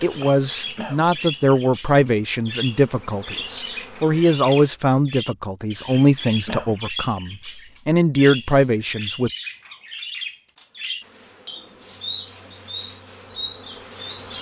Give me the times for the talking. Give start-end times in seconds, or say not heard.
0.0-9.3.